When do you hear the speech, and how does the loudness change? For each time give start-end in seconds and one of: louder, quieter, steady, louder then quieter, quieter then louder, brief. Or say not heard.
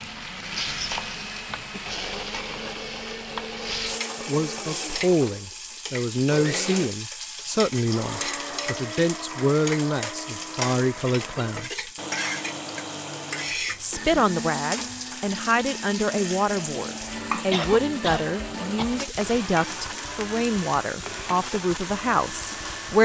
4.2-11.9 steady
13.8-22.9 steady.